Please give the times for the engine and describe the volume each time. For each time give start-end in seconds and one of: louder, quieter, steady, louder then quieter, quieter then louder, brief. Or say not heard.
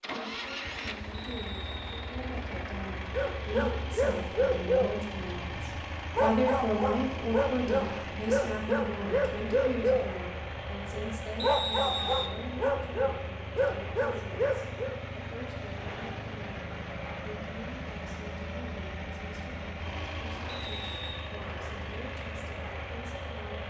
0.0-23.6 steady.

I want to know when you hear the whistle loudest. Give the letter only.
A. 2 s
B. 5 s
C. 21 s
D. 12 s
D.